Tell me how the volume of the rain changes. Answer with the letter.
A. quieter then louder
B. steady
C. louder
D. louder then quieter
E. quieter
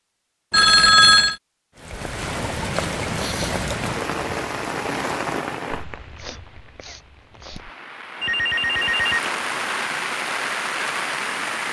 A.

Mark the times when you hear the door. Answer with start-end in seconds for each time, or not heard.
not heard.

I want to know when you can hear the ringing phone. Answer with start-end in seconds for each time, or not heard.
0.5-1.4, 8.2-9.5.